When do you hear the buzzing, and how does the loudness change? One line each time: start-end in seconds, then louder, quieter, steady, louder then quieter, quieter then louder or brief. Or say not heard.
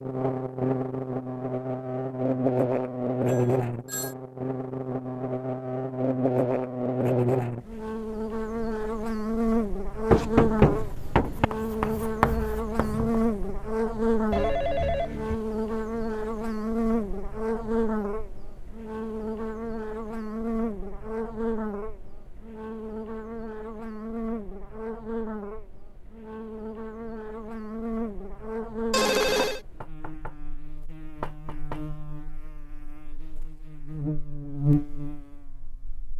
0.0-36.1 quieter.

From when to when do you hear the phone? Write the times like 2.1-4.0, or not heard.
3.2-4.2, 14.3-15.3, 28.9-29.6.